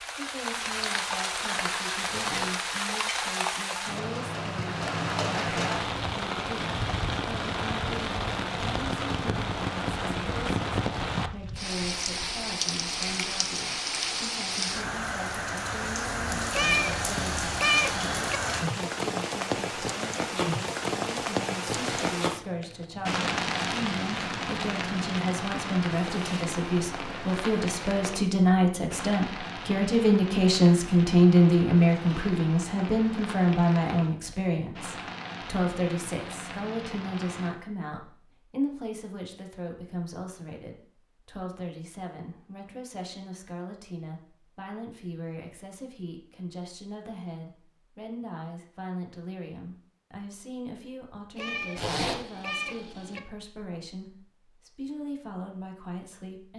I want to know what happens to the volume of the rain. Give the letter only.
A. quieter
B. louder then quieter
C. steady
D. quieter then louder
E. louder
A.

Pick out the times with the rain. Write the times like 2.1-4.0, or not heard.
0.0-37.5.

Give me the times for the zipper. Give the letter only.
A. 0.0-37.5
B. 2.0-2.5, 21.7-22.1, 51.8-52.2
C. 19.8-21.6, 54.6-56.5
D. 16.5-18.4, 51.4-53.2
B.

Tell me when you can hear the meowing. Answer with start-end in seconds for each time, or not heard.
16.5-18.4, 51.4-53.2.